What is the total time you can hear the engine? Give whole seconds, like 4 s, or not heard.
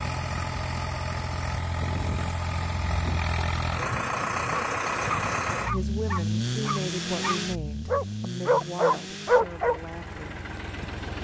11 s.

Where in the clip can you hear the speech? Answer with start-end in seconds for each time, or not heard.
5.7-10.4.